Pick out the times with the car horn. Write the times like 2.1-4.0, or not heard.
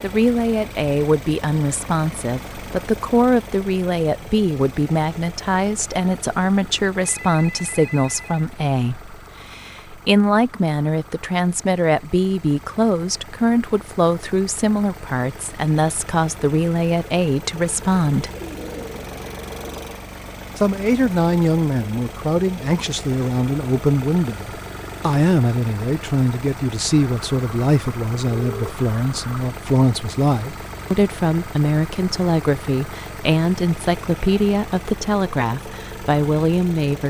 not heard.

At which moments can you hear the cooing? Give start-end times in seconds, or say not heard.
18.4-19.9.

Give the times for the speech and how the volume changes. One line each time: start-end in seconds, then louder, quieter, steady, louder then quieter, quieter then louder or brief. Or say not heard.
0.0-18.3 steady
20.6-37.0 steady.